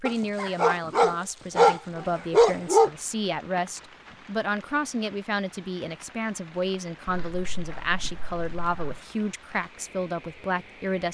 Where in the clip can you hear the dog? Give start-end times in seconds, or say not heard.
0.1-2.9, 7.0-9.0.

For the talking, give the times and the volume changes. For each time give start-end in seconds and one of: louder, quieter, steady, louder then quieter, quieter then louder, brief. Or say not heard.
0.0-11.0 steady.